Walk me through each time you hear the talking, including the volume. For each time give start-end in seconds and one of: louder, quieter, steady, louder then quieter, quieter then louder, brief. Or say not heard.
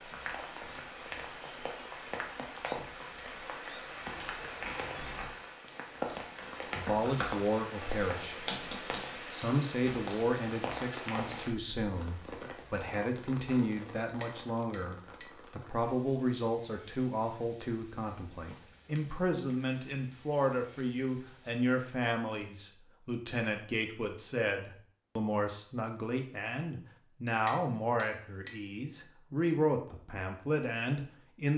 6.8-8.5 brief
9.3-31.5 steady.